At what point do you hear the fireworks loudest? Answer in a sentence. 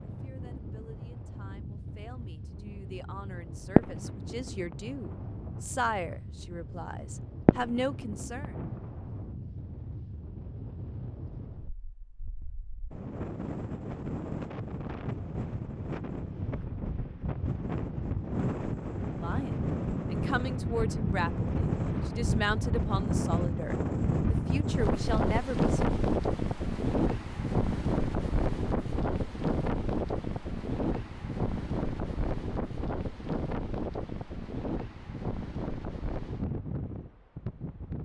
The volume of the fireworks peaks at 4 seconds.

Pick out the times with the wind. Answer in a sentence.
You can hear the wind from 0.0 to 38.0 s.